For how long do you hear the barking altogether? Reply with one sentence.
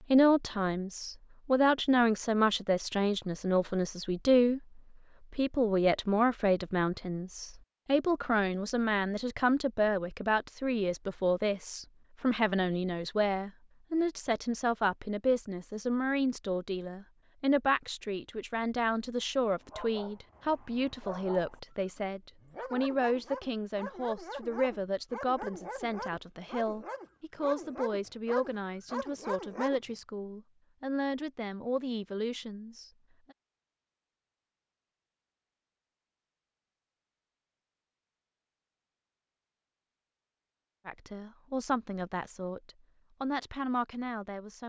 The barking can be heard for 10 seconds in total.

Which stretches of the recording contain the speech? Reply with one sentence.
The speech can be heard from 0.1 to 33.4 s and from 40.9 to 44.6 s.